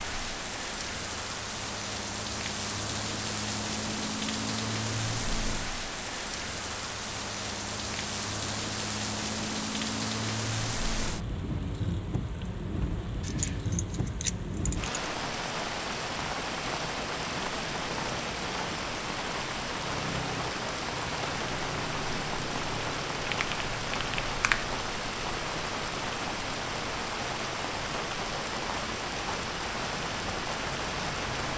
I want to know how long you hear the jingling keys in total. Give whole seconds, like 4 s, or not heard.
2 s.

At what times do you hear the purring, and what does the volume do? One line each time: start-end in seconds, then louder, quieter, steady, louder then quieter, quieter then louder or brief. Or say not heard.
not heard.